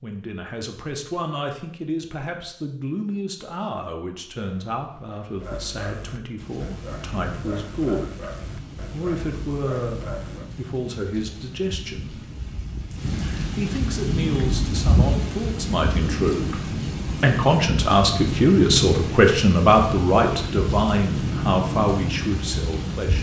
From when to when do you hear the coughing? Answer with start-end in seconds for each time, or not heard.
not heard.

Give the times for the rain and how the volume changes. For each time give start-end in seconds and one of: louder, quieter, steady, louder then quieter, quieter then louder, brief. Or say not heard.
6.3-23.1 louder.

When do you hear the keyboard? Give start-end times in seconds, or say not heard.
not heard.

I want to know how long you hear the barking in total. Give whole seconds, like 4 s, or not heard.
6 s.